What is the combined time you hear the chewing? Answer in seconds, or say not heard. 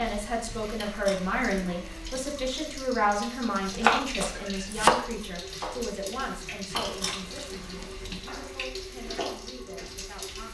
3 s.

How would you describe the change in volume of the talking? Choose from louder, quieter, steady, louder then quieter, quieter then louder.
quieter.